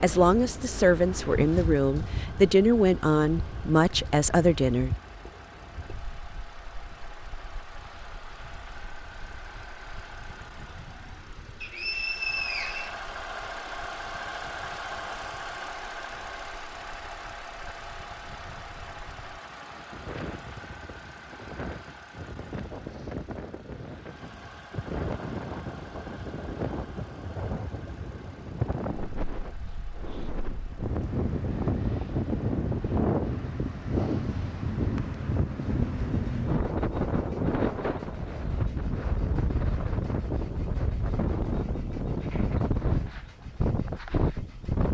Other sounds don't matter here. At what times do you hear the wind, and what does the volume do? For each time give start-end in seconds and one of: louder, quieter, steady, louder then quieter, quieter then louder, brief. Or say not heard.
0.0-44.8 quieter then louder.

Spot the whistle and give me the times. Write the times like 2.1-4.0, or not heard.
11.6-13.0.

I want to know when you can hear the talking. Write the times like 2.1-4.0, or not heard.
0.0-4.9.